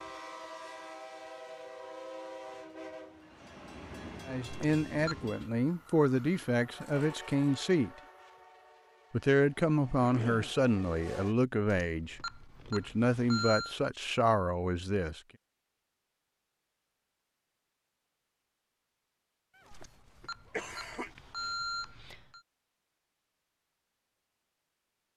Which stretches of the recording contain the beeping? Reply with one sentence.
The beeping can be heard from 4.5 to 5.2 s, from 11.9 to 13.8 s and from 19.7 to 22.4 s.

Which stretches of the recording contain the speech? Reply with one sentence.
You can hear the speech from 4.2 to 7.9 s and from 9.1 to 15.2 s.